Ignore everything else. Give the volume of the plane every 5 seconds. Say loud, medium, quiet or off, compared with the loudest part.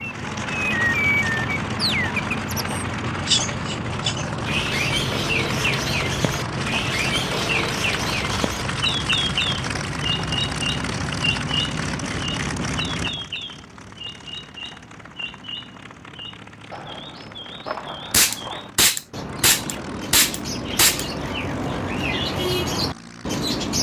loud, loud, loud, quiet, quiet.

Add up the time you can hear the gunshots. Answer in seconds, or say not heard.
3 s.